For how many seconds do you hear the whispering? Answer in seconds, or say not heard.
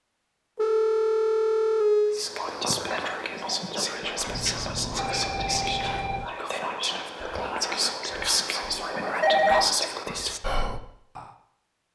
9 s.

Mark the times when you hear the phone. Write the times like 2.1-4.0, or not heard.
0.6-2.2, 4.2-6.2, 9.1-9.7.